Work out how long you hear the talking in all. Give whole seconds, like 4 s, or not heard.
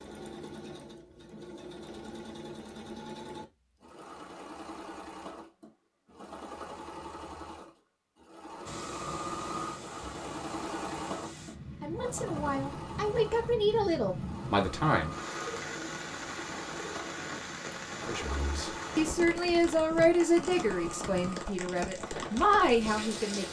9 s.